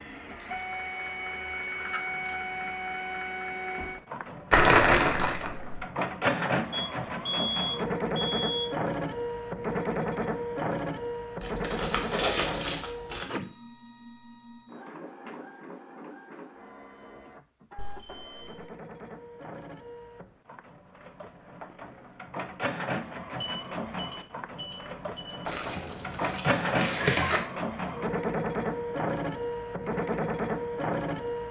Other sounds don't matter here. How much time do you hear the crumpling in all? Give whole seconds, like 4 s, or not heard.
5 s.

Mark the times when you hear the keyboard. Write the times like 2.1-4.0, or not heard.
not heard.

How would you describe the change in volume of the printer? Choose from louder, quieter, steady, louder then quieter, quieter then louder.
quieter then louder.